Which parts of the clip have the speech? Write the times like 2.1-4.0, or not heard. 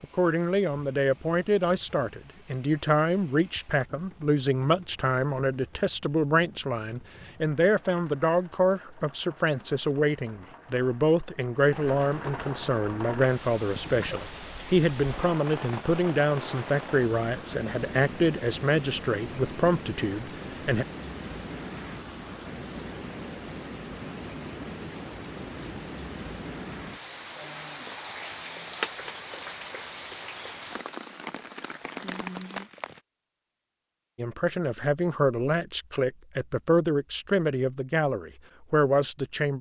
0.0-20.9, 34.1-39.5.